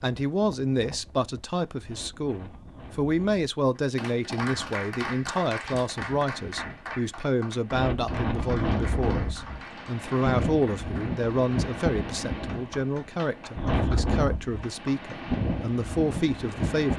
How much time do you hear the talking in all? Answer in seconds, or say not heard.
17 s.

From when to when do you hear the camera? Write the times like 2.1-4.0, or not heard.
not heard.